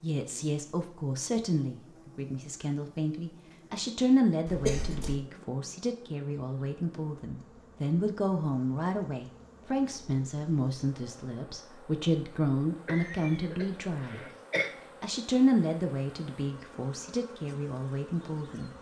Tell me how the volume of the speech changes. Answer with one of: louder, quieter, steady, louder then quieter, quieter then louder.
steady.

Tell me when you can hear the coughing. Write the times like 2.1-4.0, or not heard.
4.5-5.2, 12.8-14.7.